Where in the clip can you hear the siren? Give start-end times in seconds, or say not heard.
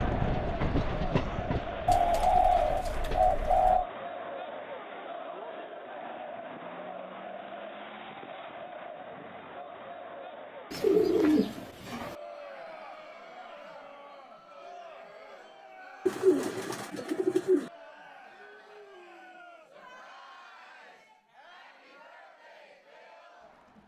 not heard.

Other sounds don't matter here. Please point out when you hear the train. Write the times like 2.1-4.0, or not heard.
0.0-3.5.